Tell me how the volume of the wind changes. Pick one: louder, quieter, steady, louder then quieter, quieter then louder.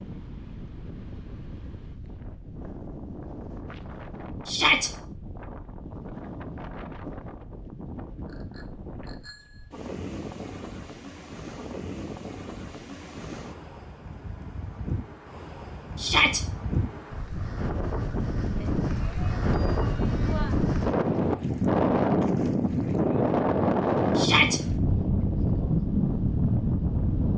louder.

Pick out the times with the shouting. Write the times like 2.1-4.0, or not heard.
4.5-4.9, 15.9-16.4, 24.1-24.6.